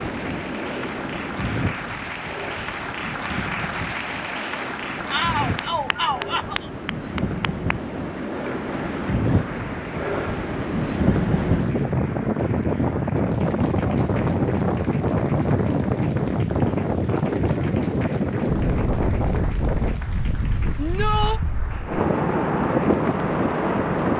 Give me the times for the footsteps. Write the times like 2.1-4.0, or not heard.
not heard.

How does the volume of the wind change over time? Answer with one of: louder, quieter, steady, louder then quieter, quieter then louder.
louder.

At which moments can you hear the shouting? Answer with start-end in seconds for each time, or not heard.
5.1-6.5, 20.8-21.4.